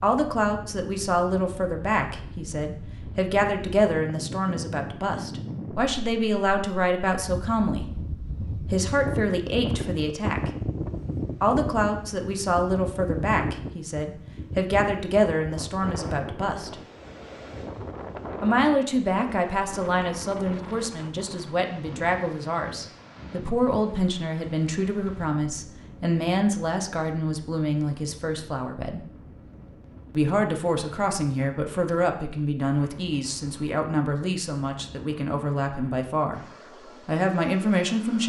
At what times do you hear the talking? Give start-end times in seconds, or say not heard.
0.0-7.9, 8.7-10.5, 11.4-16.8, 18.4-29.0, 30.1-38.2.